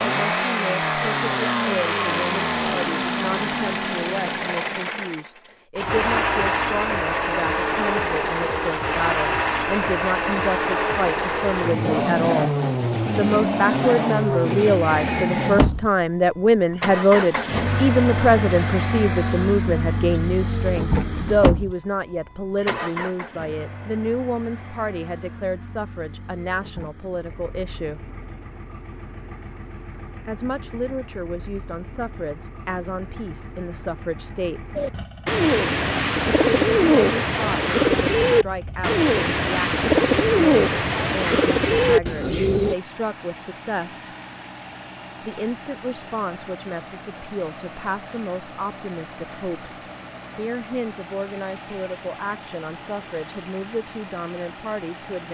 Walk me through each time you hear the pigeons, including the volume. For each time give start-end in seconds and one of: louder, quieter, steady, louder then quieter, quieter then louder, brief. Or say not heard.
34.8-42.8 steady.